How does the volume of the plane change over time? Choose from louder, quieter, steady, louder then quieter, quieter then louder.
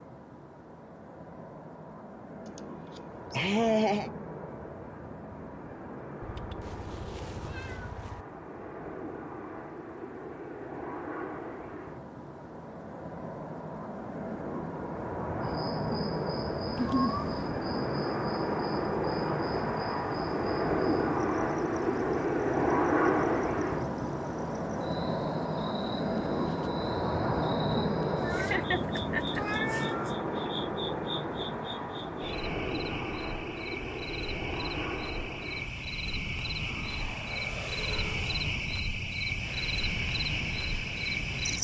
louder then quieter.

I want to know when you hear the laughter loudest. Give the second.
4 s.